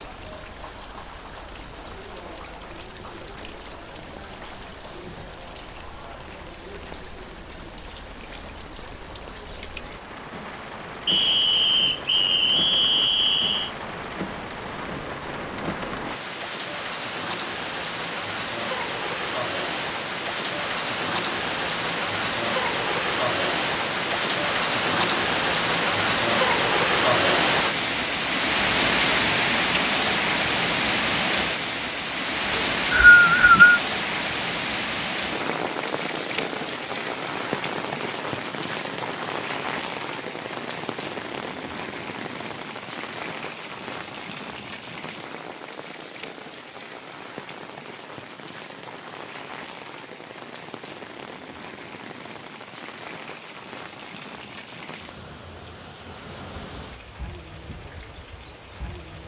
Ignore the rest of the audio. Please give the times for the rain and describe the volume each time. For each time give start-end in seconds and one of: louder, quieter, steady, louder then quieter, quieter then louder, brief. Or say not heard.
0.0-59.2 louder then quieter.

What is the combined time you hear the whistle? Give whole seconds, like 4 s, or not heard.
4 s.